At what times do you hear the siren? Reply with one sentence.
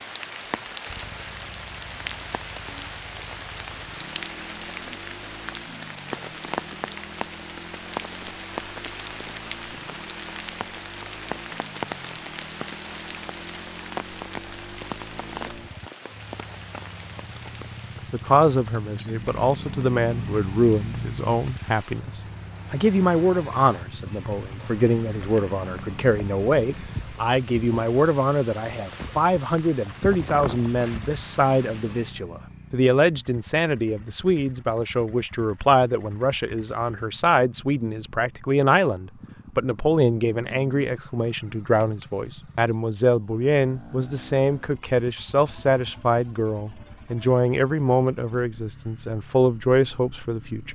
The siren can't be heard in this clip.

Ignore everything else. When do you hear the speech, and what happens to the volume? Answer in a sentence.
You can hear the speech from 18.1 to 50.6 s, at a steady volume.